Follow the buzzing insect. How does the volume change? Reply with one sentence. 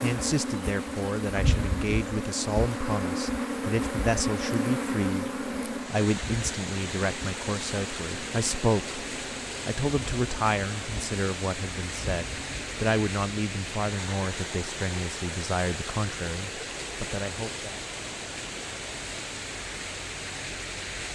The loudness of the buzzing insect goes down.